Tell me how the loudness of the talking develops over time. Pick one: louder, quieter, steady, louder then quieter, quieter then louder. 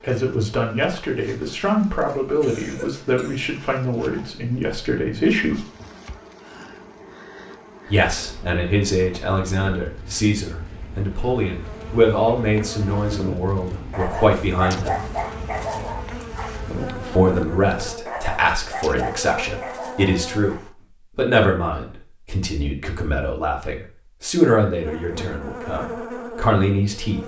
steady.